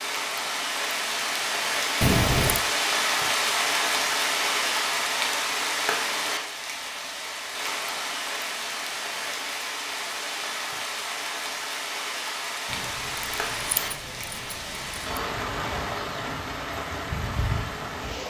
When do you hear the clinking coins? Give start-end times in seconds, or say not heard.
not heard.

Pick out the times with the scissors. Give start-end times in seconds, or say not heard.
2.0-2.6, 12.7-15.2.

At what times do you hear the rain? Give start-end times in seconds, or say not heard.
0.0-18.2.